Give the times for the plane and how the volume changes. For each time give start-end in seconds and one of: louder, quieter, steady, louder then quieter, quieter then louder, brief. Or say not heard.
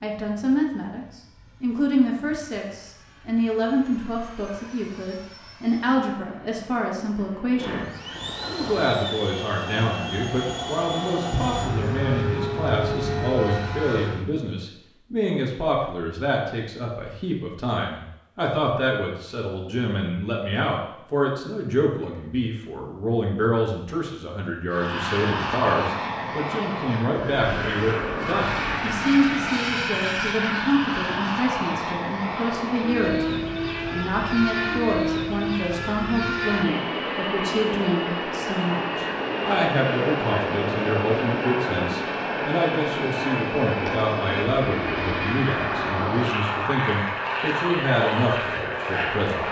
0.0-14.2 louder
24.7-49.4 steady.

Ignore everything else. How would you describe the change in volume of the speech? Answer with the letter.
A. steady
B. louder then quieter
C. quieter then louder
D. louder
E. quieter
A.